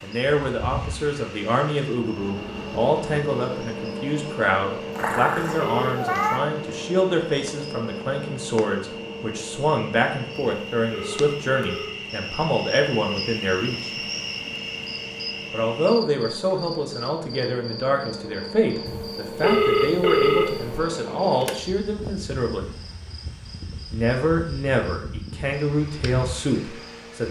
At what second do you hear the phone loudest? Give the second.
20 s.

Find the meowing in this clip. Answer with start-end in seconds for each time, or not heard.
5.0-6.4.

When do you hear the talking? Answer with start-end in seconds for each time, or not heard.
0.0-13.9, 15.5-22.7, 23.9-27.2.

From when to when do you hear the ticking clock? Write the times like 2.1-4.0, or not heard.
not heard.